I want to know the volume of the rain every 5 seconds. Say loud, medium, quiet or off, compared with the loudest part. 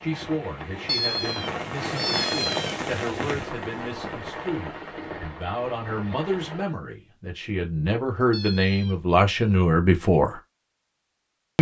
loud, medium, off.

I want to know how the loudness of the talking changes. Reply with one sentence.
The volume of the talking goes up.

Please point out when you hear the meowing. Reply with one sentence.
The meowing can be heard from 0.8 to 2.8 s and from 8.3 to 8.9 s.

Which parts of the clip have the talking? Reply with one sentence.
You can hear the talking from 0.0 to 10.4 s.